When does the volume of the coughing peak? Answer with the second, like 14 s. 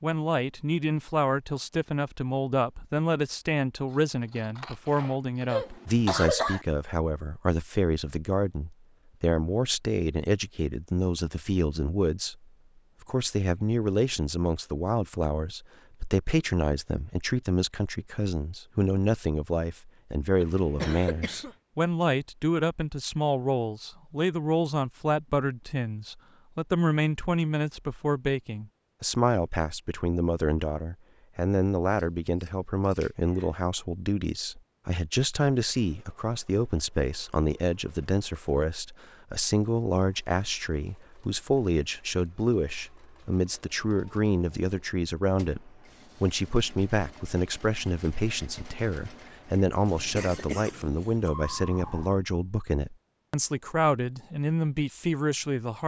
6 s.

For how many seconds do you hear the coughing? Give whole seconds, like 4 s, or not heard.
3 s.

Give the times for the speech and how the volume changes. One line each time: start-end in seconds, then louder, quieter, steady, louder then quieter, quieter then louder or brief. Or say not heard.
0.0-55.8 steady.